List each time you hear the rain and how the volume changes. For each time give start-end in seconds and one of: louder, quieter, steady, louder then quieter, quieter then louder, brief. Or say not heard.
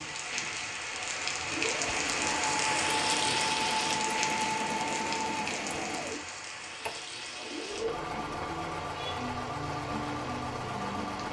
0.0-11.2 quieter.